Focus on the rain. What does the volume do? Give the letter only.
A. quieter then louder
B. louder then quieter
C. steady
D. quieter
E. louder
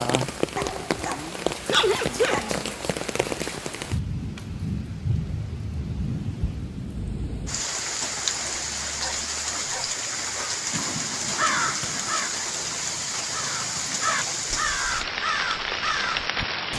C.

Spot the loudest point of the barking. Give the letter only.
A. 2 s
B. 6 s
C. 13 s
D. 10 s
A.